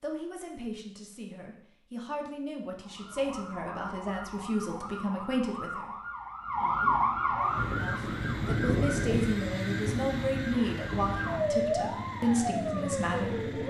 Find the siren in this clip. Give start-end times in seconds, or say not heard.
2.8-13.6.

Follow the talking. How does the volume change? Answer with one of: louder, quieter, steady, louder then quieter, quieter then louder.
louder.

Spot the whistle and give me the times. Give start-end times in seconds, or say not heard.
not heard.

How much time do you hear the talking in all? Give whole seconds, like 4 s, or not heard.
12 s.